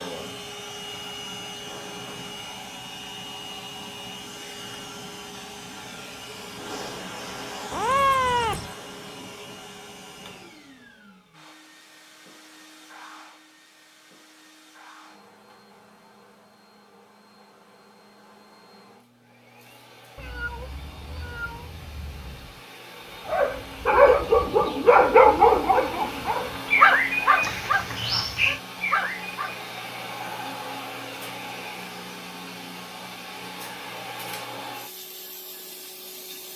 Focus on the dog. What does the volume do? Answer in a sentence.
The loudness of the dog goes down.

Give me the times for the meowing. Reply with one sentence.
You can hear the meowing from 7.7 to 8.7 s, from 20.1 to 22.6 s and from 27.4 to 28.6 s.